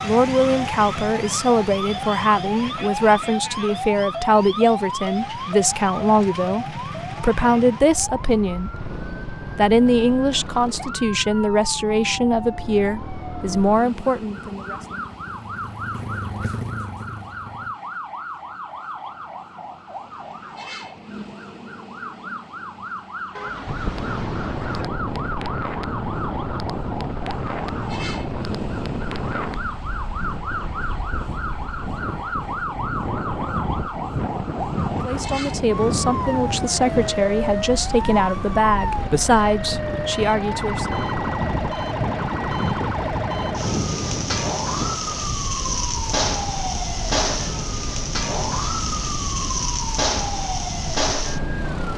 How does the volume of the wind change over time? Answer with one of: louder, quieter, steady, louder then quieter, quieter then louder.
quieter.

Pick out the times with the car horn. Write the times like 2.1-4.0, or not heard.
23.3-24.9.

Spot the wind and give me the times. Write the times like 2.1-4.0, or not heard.
23.6-51.9.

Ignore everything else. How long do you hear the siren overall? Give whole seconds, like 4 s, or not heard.
52 s.